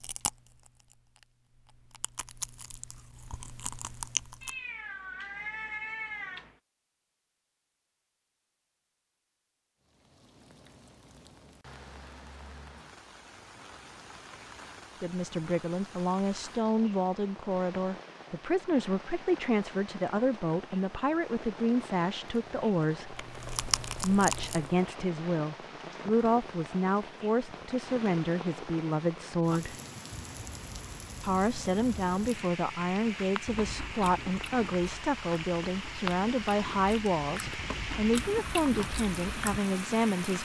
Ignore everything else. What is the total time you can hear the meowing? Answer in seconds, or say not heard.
2 s.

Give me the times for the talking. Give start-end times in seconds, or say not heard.
15.0-23.2, 24.0-29.8, 31.2-40.3.